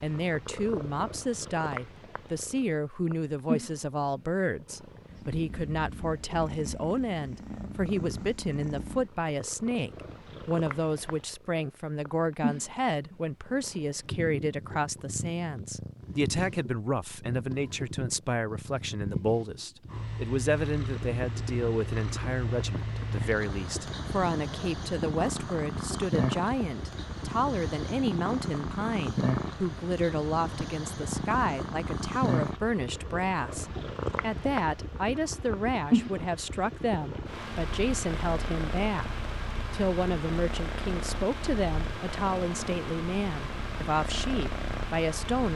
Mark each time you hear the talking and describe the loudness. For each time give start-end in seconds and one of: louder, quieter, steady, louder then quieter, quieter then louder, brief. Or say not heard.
0.0-45.5 steady.